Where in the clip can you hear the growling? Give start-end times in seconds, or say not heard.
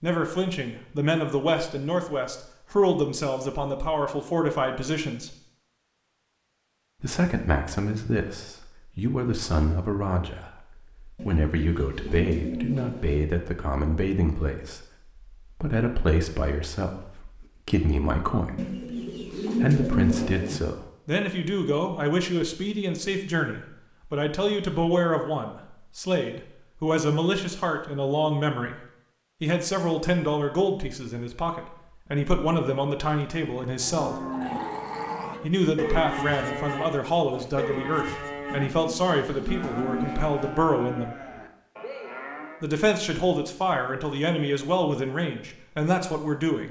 34.3-35.5.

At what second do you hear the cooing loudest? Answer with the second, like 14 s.
20 s.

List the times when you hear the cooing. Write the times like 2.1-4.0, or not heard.
11.2-13.2, 18.6-20.6, 38.5-40.5.